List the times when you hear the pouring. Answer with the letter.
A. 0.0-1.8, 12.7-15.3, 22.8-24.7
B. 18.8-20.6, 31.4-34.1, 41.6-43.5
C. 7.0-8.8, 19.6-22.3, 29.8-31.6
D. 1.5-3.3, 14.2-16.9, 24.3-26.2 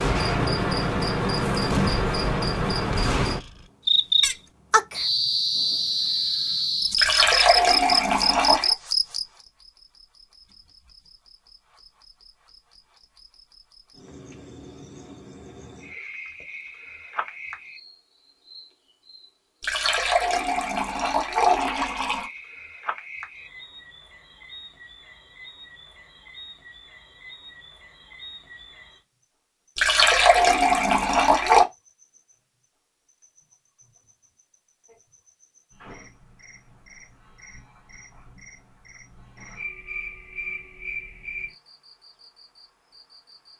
C.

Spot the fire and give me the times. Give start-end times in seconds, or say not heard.
not heard.